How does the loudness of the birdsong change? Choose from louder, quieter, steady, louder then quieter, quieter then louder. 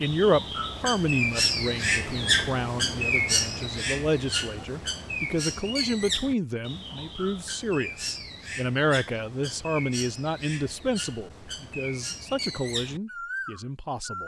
quieter.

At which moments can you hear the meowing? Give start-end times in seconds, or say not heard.
not heard.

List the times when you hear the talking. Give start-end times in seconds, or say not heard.
0.0-14.2.